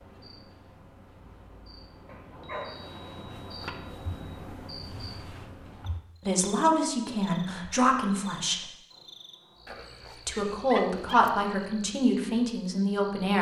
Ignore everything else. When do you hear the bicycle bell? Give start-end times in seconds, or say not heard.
2.3-4.3, 8.9-10.3.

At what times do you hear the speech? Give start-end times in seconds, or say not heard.
6.2-8.6, 10.2-13.3.